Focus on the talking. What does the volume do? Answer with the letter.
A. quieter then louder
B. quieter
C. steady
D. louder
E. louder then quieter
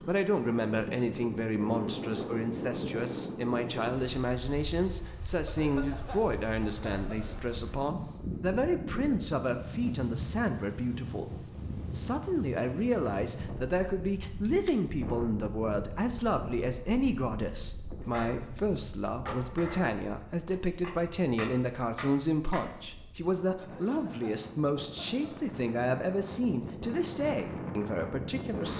C.